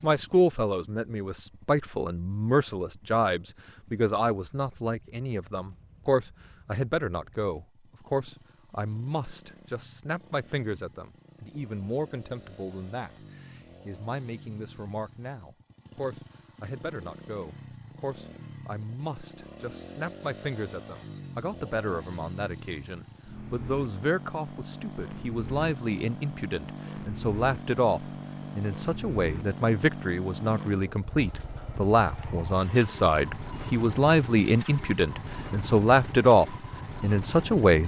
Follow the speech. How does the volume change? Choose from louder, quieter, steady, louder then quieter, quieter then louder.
quieter then louder.